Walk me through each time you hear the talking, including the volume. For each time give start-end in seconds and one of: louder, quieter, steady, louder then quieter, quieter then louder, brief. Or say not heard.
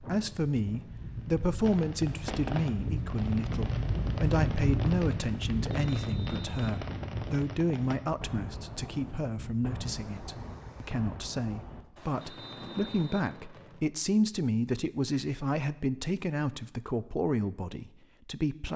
0.0-18.7 steady.